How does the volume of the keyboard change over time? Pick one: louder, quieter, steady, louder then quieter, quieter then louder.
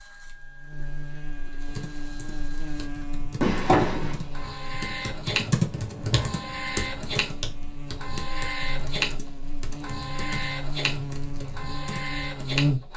louder then quieter.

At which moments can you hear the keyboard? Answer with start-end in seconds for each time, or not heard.
1.6-12.6.